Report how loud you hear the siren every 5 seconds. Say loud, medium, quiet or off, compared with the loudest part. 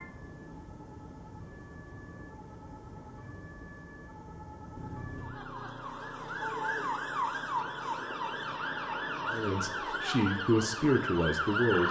quiet, loud, loud.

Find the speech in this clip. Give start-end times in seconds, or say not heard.
9.3-11.8.